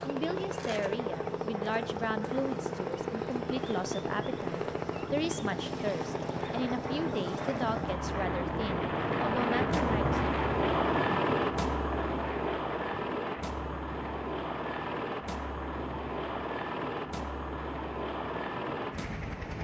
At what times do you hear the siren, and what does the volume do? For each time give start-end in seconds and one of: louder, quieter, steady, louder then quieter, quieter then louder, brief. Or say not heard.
not heard.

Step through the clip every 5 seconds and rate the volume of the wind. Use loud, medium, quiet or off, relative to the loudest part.
medium, loud, loud, medium.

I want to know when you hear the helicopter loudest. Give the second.
11 s.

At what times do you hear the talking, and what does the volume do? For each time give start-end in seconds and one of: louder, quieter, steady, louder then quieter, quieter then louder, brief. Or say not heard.
0.1-10.2 steady.